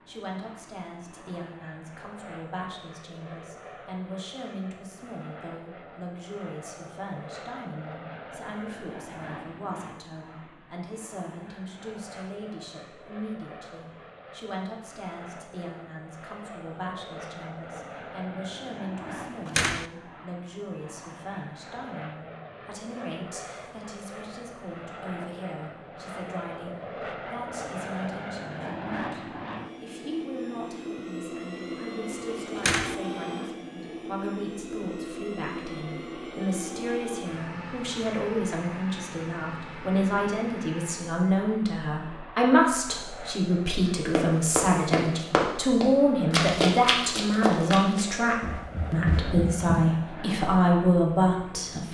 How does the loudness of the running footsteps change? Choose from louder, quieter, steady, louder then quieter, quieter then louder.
quieter.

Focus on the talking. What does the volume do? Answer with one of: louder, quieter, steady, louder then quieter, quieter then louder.
louder.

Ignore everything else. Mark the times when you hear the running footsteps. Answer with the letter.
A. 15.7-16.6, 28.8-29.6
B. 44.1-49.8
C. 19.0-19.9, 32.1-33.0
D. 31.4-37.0
B.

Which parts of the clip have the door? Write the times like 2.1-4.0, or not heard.
19.0-19.9, 32.1-33.0.